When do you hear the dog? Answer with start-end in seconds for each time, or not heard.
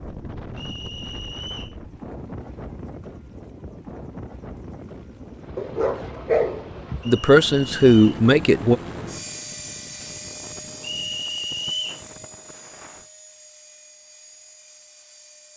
5.5-7.0.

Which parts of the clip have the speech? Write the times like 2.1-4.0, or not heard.
7.0-8.8.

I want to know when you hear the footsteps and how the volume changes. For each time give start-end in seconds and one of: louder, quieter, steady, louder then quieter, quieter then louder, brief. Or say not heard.
not heard.